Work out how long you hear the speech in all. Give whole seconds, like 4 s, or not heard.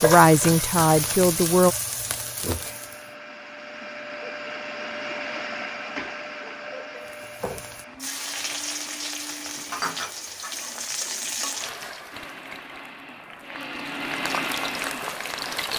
2 s.